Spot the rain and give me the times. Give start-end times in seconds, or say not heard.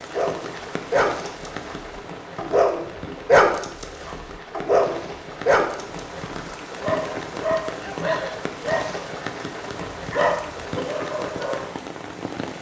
0.0-12.5.